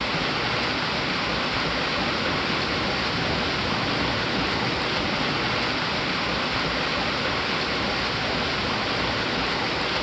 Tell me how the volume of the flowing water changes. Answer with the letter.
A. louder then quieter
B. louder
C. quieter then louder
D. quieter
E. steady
E.